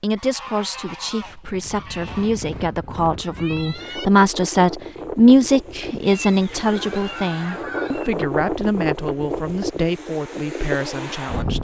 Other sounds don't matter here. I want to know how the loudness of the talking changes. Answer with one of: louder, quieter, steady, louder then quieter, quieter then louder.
louder then quieter.